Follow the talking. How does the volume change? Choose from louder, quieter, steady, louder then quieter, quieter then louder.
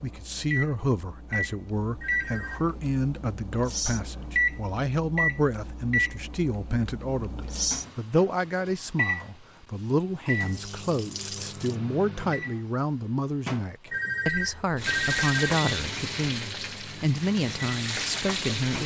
steady.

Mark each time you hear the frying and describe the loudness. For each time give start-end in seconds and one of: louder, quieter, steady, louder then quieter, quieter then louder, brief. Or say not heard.
9.7-11.8 brief
14.8-18.8 quieter then louder.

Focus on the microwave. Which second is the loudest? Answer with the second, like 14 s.
5 s.